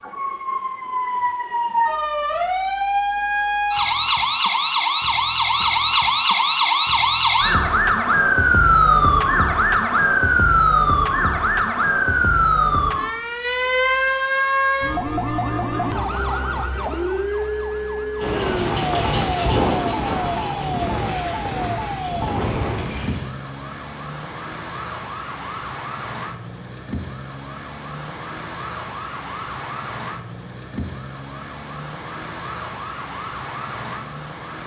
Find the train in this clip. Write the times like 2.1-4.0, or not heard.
18.1-23.2.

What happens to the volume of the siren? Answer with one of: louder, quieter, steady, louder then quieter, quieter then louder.
quieter.